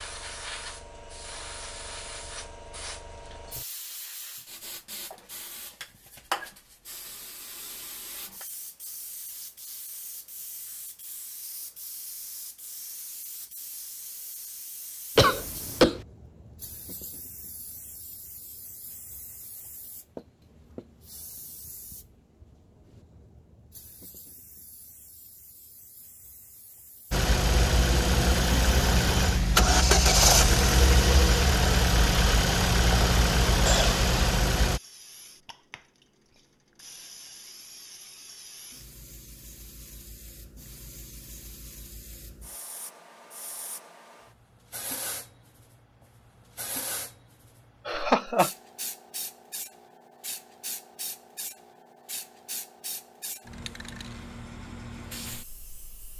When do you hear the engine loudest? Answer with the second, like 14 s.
30 s.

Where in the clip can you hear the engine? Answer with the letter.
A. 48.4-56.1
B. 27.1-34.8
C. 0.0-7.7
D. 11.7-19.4
B.